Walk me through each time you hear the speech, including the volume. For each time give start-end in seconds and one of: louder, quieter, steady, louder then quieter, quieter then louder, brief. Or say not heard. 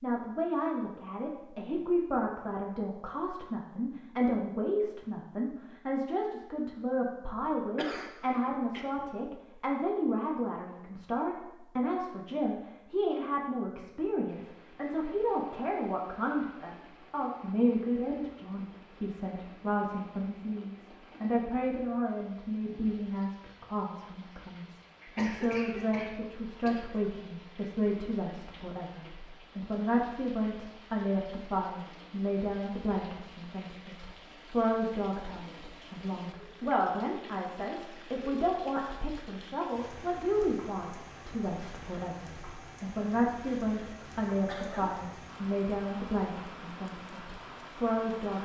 0.0-48.4 steady.